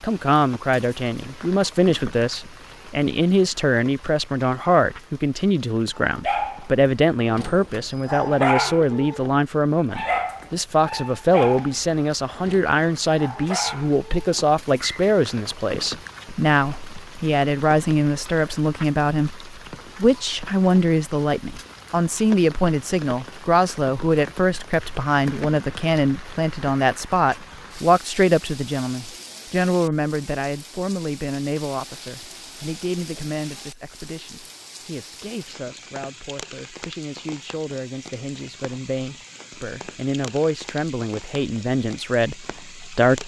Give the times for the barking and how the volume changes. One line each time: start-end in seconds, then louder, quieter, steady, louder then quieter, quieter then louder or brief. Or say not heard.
6.0-15.1 louder then quieter.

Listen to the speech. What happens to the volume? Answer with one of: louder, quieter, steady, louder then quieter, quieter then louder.
quieter.